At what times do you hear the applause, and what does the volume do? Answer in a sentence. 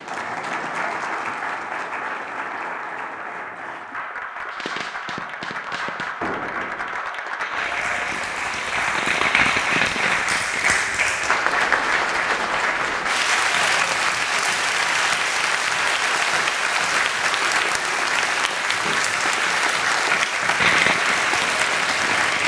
The applause can be heard from 0.0 to 22.4 s, getting louder.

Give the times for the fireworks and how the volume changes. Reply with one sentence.
The fireworks can be heard from 4.5 to 11.1 s, getting louder; and briefly from 20.6 to 22.4 s.